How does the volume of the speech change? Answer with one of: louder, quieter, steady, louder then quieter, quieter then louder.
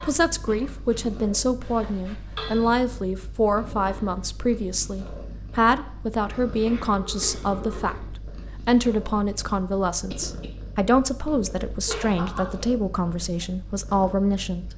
steady.